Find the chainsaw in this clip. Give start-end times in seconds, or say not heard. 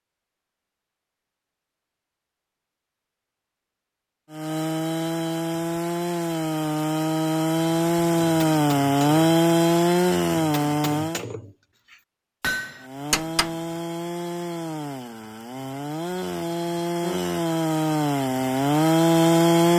4.3-11.2, 12.8-19.7.